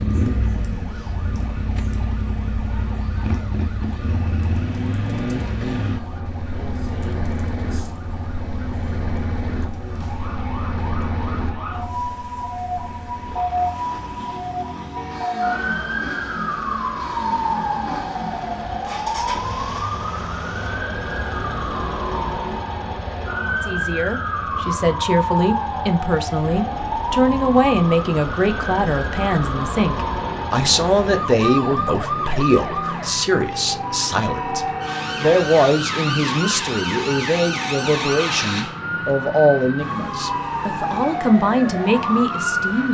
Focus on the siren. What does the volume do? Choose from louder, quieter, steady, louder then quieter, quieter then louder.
louder.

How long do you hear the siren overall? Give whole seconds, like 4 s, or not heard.
43 s.